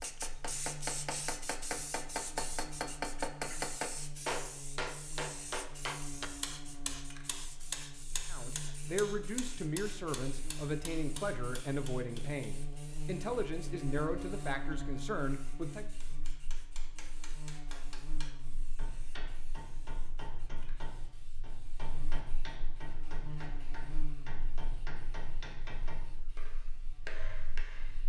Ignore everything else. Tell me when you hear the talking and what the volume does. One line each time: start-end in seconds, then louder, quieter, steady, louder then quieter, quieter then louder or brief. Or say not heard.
8.3-15.9 steady.